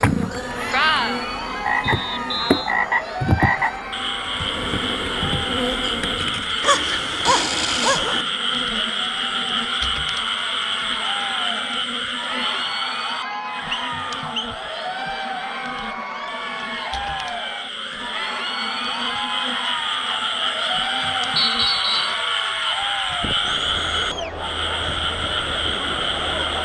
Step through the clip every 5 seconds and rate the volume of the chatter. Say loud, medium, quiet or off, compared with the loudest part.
loud, medium, loud, loud, loud, loud.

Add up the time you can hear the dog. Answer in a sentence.
The dog can be heard for 2 seconds in total.